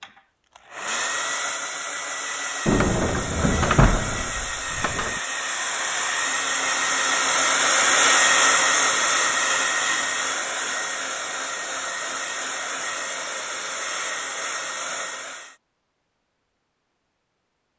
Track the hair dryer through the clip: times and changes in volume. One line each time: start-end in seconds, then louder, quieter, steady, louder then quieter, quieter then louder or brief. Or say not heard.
0.0-15.6 louder then quieter.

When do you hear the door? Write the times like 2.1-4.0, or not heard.
2.6-5.2.